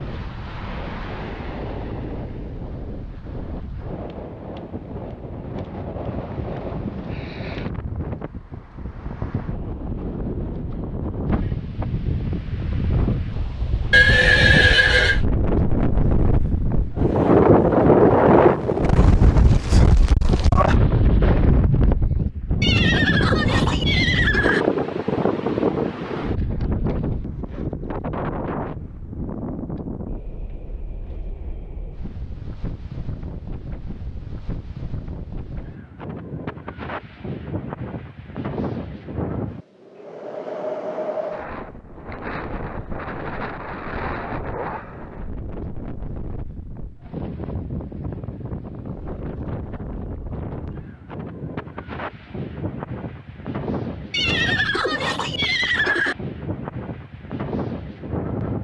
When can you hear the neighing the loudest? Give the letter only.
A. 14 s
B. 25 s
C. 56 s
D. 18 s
A.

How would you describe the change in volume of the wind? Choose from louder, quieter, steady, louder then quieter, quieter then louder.
louder then quieter.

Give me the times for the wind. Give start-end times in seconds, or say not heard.
0.0-58.5.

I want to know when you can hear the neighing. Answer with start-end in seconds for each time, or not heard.
13.9-15.2, 22.6-24.6, 54.1-56.1.